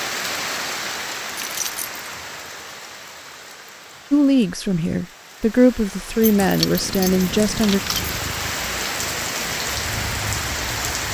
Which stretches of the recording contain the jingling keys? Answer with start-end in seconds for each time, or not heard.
1.4-1.9, 6.2-8.2.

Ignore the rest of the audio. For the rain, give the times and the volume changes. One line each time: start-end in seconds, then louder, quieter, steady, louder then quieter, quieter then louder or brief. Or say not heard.
0.0-11.1 quieter then louder.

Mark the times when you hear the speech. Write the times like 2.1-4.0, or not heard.
4.1-7.8.